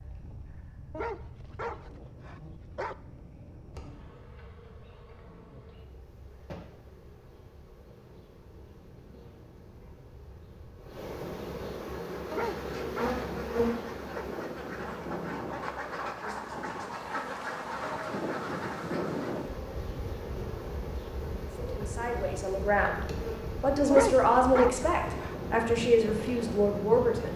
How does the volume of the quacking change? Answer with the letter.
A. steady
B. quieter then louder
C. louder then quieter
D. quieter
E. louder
E.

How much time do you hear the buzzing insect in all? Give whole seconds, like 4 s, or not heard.
27 s.